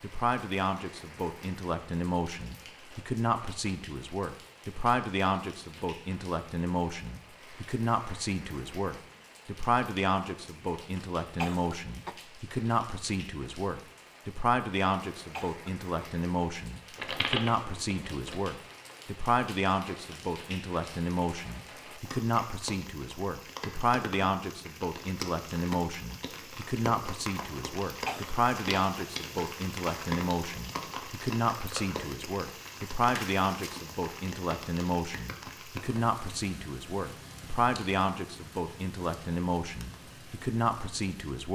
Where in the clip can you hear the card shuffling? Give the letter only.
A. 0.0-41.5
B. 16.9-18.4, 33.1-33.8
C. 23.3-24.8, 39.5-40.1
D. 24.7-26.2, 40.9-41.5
B.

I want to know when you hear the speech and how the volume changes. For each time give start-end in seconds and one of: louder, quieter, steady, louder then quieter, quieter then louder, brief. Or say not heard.
0.0-41.5 steady.